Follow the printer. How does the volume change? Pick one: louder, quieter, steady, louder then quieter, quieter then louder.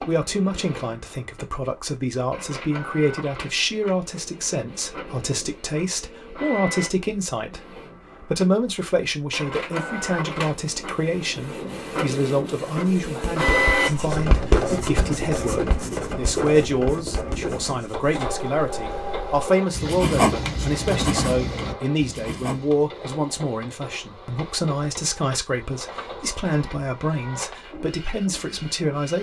louder then quieter.